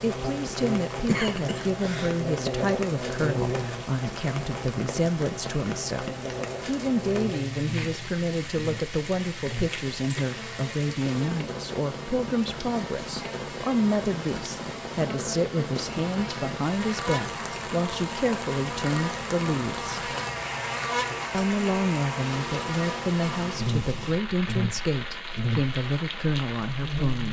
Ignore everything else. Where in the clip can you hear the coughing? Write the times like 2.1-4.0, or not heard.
1.1-2.1.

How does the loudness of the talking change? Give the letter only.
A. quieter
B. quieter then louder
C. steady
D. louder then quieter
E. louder
C.